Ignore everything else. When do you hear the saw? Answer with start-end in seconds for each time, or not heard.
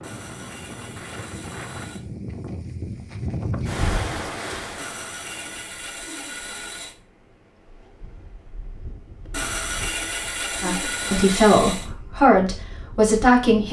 0.0-2.0, 4.8-7.0, 9.3-11.9.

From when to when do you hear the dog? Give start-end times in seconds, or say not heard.
not heard.